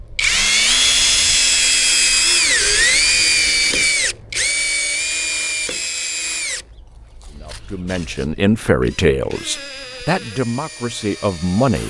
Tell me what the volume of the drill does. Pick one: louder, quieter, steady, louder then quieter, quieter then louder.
quieter then louder.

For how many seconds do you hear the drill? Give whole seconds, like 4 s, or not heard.
12 s.